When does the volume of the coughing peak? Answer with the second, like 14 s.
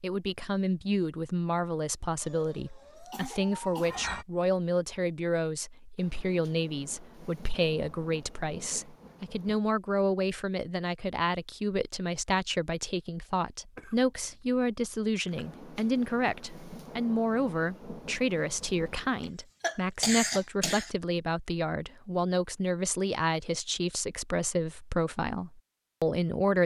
20 s.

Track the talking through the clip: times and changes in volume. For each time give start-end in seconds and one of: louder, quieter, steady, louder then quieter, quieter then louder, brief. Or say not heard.
0.0-26.6 steady.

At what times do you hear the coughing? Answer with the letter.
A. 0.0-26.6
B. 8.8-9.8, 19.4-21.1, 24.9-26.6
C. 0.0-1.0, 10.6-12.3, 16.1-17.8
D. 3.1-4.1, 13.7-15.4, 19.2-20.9
D.